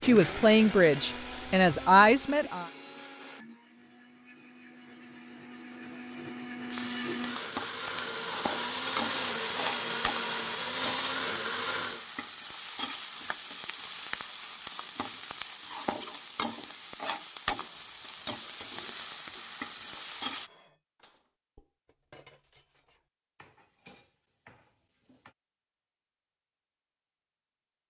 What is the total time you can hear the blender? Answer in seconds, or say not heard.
12 s.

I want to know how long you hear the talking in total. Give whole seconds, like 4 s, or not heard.
3 s.